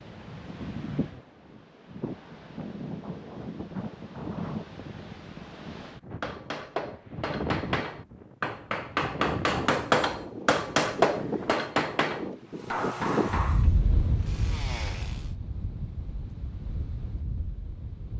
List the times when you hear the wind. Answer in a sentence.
You can hear the wind from 0.0 to 18.1 s.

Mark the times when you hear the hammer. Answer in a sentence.
The hammer can be heard from 6.2 to 13.7 s.